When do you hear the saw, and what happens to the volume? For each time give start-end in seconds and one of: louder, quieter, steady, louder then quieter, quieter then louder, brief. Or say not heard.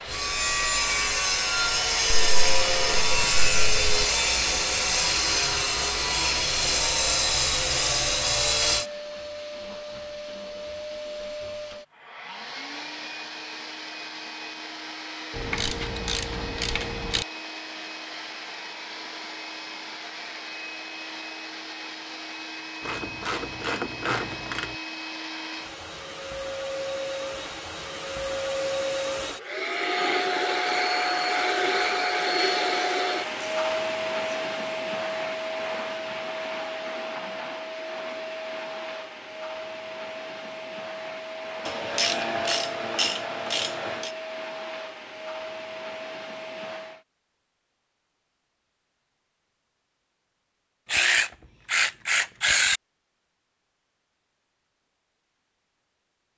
0.1-8.8 steady.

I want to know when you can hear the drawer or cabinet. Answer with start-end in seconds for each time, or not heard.
not heard.